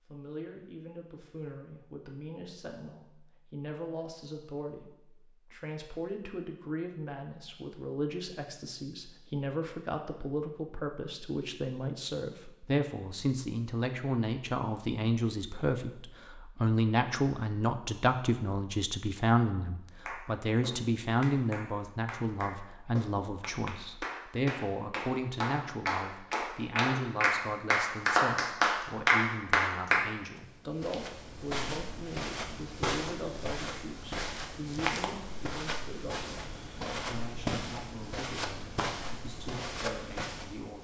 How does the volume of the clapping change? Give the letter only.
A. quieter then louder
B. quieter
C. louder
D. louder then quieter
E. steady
C.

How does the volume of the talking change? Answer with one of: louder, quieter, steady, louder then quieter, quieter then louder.
louder then quieter.